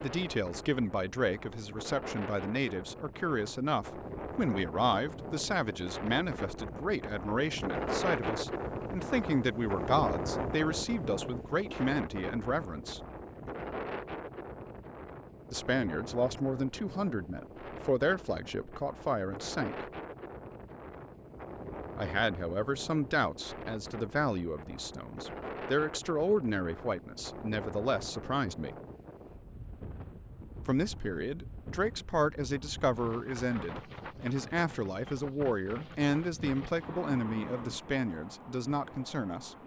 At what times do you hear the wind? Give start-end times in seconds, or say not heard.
0.0-39.6.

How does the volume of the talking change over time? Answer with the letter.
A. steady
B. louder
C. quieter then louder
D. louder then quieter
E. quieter
A.